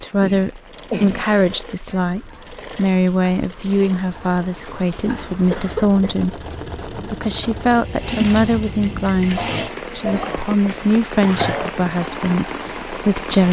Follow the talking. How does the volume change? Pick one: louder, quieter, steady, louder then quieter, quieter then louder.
steady.